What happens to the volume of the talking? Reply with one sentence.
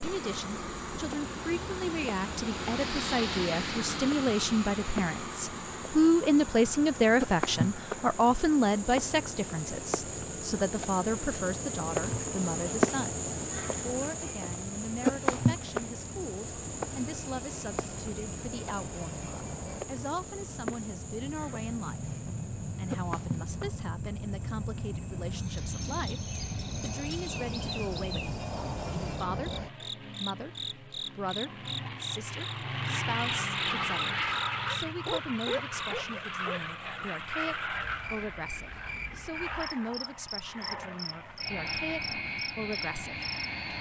The volume of the talking goes down.